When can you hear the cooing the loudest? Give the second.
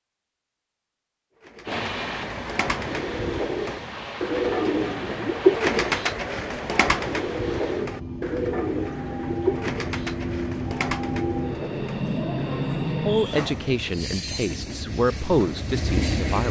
6 s.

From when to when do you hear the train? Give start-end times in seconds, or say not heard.
1.6-16.4.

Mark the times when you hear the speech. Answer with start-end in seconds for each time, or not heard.
13.1-16.4.